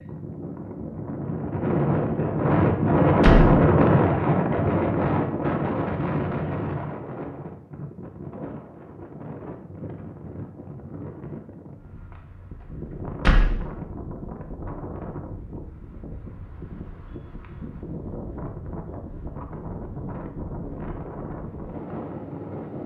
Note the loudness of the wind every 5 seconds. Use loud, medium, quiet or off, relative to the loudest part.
loud, medium, quiet, quiet, quiet.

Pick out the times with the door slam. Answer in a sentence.
The door slam can be heard from 3.2 to 3.6 s and from 13.2 to 13.7 s.